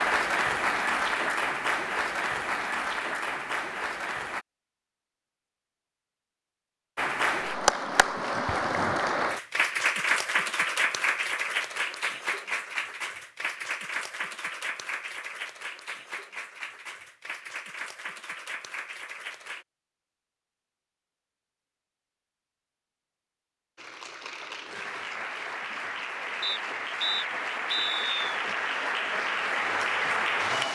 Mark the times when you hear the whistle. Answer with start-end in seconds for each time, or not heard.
26.4-28.2.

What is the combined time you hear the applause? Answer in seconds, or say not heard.
24 s.